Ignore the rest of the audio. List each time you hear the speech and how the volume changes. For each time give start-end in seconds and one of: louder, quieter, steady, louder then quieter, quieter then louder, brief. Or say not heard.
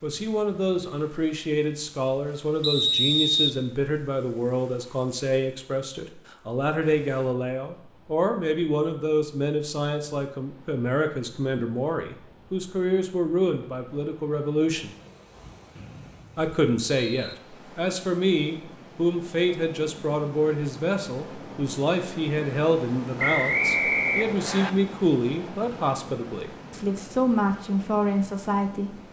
0.0-14.9 steady
16.4-28.9 steady.